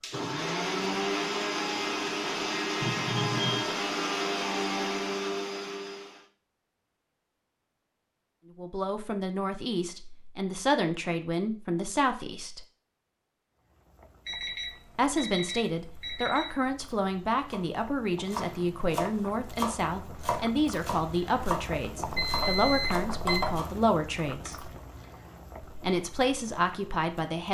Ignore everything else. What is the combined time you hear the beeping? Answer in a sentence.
You can hear the beeping for 5 seconds altogether.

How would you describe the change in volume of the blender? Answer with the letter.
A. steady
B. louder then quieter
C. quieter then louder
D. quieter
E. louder
A.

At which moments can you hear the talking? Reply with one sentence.
The talking can be heard from 8.6 to 12.6 s, from 14.9 to 24.7 s and from 25.8 to 27.4 s.